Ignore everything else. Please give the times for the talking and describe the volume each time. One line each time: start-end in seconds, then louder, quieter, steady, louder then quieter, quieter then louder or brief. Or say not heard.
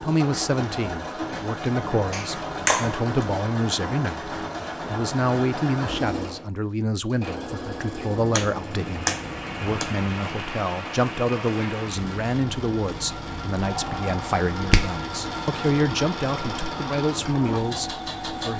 0.0-18.5 steady.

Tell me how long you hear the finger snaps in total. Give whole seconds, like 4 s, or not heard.
4 s.